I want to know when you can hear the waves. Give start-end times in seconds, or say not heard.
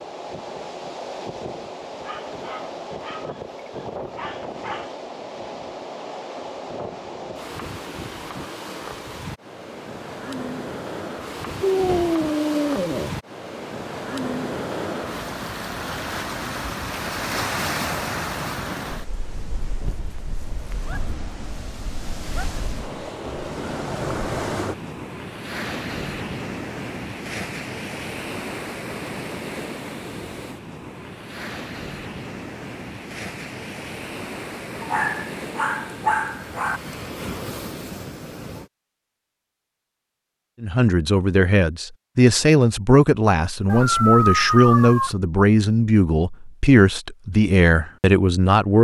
0.0-38.7.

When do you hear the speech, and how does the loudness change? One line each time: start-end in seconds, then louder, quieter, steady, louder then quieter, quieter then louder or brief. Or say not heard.
40.6-48.7 steady.